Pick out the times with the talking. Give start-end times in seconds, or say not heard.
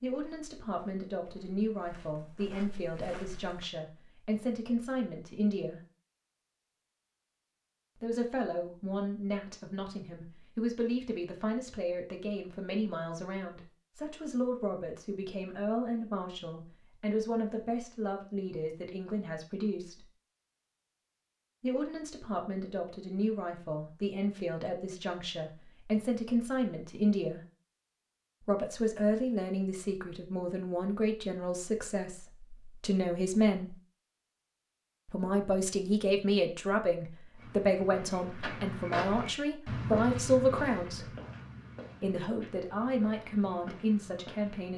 0.0-5.8, 8.0-20.1, 21.6-27.4, 28.4-33.8, 35.0-41.1, 42.0-44.7.